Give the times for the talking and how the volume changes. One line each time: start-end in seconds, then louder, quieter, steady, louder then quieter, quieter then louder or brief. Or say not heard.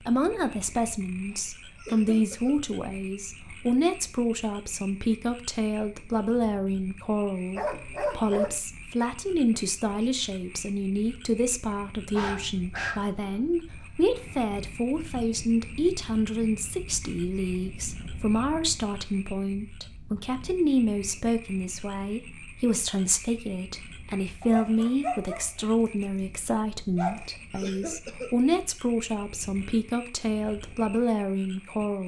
0.0-32.0 steady.